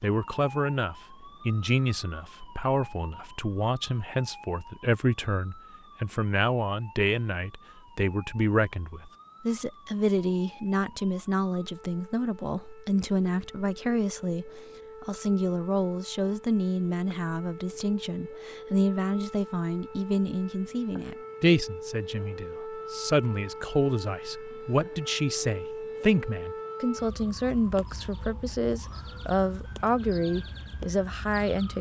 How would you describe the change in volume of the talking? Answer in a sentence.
The loudness of the talking stays about the same.